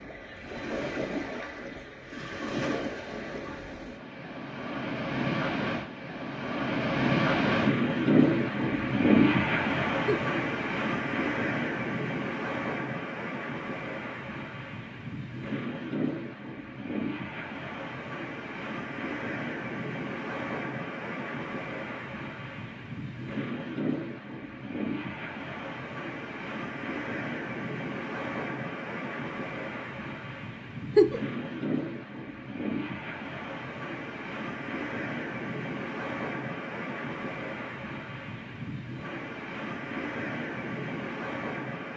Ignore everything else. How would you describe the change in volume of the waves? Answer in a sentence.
The loudness of the waves goes down.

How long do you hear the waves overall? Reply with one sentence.
You can hear the waves for 42 seconds altogether.